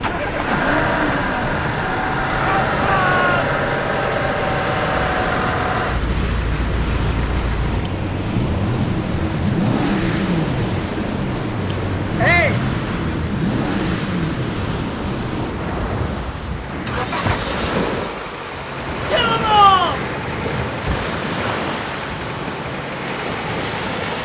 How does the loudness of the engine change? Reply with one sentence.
The volume of the engine goes down.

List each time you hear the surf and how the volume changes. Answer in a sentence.
You can hear the surf from 0.0 to 24.1 s, at a steady volume.